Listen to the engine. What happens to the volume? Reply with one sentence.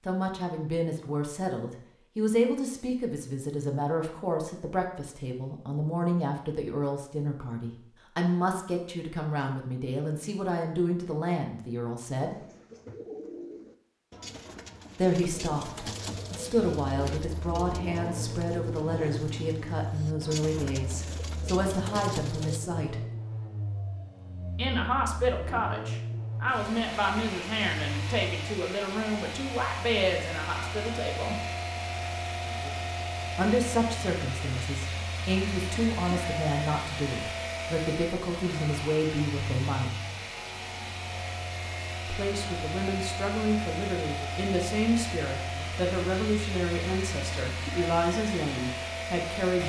The volume of the engine stays about the same.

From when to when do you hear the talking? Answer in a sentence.
You can hear the talking from 0.1 to 12.3 s, from 14.9 to 23.0 s, from 24.6 to 31.4 s, from 33.4 to 40.0 s and from 42.0 to 49.6 s.